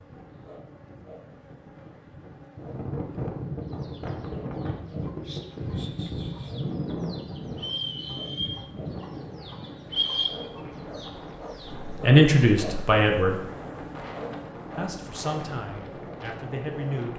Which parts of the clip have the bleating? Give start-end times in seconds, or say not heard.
not heard.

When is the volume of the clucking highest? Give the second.
10 s.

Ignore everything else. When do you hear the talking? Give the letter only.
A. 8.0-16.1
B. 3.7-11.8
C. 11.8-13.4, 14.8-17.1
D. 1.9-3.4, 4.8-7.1
C.